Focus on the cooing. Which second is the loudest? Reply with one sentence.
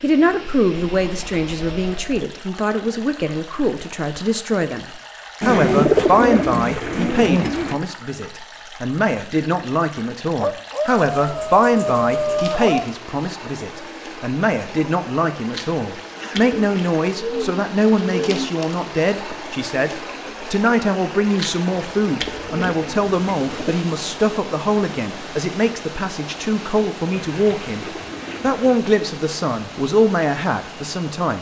The loudest moment of the cooing is at 6 seconds.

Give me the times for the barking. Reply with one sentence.
The barking can be heard from 10.3 to 12.9 s.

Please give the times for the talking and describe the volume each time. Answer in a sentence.
The talking can be heard from 0.0 to 31.3 s, at a steady volume.